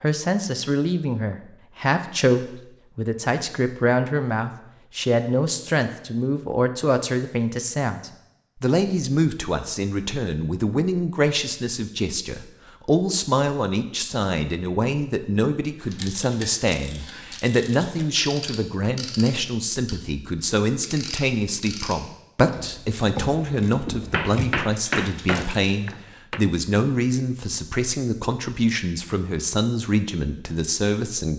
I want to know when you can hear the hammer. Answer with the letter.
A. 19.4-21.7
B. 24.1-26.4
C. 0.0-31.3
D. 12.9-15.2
B.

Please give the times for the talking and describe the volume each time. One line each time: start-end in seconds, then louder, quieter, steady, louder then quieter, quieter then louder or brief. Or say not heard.
0.0-31.3 steady.